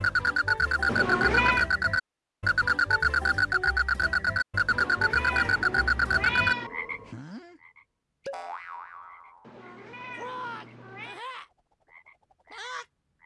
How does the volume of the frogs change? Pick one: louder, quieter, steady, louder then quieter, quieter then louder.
quieter.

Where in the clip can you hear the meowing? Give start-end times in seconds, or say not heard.
0.8-1.6, 4.7-6.7, 9.4-11.2.